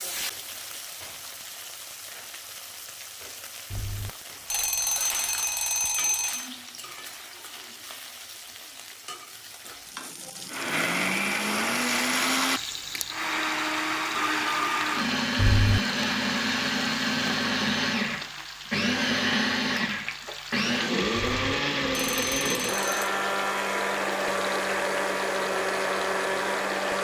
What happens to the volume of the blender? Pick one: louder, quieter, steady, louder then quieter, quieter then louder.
steady.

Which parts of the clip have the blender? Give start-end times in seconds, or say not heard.
10.4-26.9.